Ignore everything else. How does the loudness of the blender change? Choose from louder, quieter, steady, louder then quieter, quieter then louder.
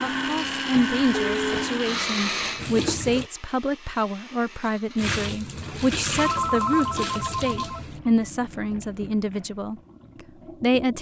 quieter.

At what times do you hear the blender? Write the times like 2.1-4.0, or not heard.
0.0-5.2.